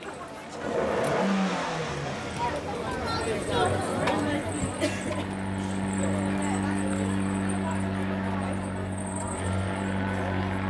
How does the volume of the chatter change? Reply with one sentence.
The loudness of the chatter goes up, then down.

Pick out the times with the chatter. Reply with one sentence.
The chatter can be heard from 0.0 to 10.6 s.